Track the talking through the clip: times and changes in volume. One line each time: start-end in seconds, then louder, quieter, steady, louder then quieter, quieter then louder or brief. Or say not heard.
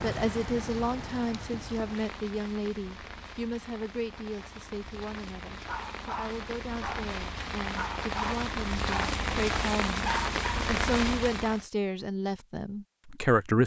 0.0-13.6 quieter then louder.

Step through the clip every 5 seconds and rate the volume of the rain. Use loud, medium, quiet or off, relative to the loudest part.
medium, loud, loud.